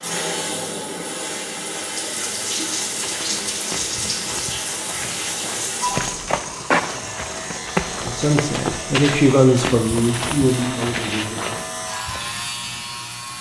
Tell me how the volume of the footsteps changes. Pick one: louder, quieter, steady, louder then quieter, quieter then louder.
louder.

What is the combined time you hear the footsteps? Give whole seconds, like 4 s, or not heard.
10 s.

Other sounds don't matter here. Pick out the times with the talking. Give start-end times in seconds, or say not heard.
8.0-11.4.